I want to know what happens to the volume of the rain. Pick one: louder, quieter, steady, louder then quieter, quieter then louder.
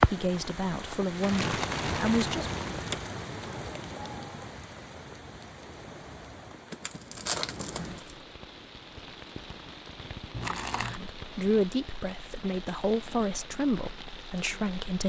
quieter.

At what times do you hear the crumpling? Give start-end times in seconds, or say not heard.
1.2-3.0, 6.7-8.2, 10.3-11.0.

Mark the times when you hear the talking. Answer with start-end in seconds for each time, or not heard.
0.0-2.5, 10.8-15.0.